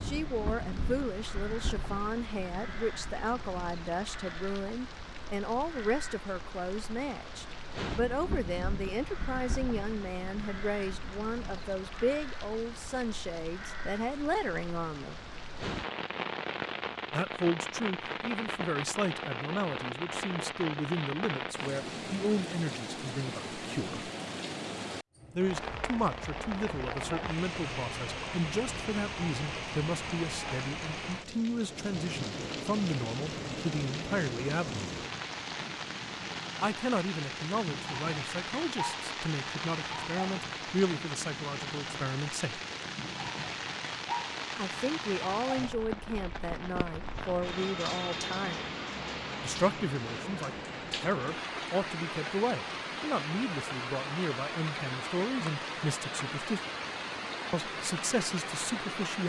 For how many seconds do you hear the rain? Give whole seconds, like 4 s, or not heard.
59 s.